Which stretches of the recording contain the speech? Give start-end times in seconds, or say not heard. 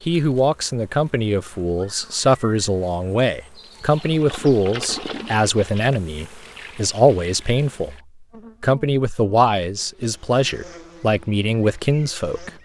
0.1-8.0, 8.6-12.5.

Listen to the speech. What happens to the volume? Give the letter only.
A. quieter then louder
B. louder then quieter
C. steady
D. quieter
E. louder
C.